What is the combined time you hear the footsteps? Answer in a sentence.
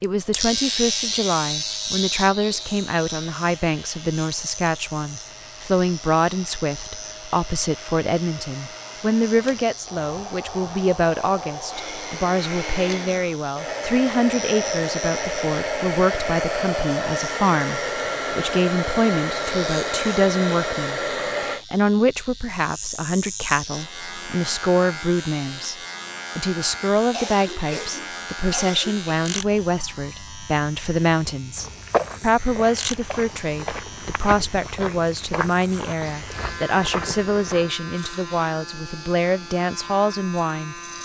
You can hear the footsteps for 6 seconds altogether.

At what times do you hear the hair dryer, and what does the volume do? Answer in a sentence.
You can hear the hair dryer from 0.2 to 21.6 s, getting louder.